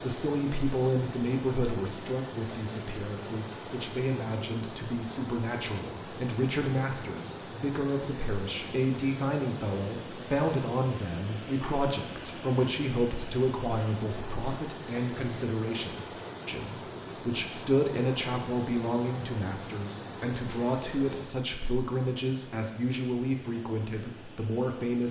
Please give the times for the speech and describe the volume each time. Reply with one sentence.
You can hear the speech from 0.0 to 25.0 s, at a steady volume.